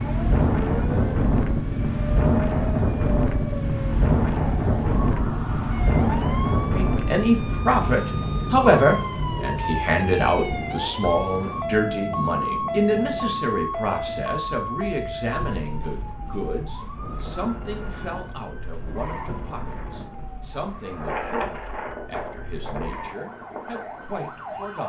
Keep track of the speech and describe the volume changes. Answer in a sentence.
The loudness of the speech goes down.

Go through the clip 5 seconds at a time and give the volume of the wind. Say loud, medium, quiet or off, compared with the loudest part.
loud, loud, quiet, quiet, medium.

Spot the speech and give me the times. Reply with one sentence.
The speech can be heard from 6.7 to 24.8 s.